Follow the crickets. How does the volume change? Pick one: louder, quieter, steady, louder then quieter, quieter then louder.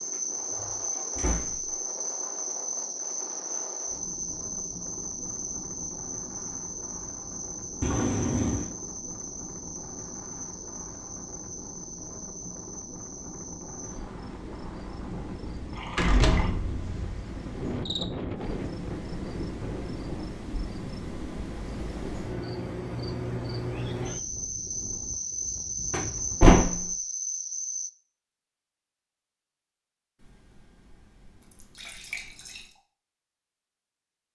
quieter then louder.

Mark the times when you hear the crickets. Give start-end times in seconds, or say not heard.
0.0-27.9.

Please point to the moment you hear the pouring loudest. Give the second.
8 s.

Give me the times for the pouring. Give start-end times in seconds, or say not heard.
7.8-8.7, 15.7-16.6, 30.2-32.7.